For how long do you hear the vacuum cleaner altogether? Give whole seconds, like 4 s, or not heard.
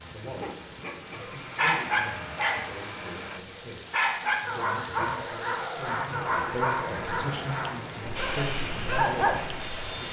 5 s.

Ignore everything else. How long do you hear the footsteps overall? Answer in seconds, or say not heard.
not heard.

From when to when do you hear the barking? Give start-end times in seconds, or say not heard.
0.4-9.9.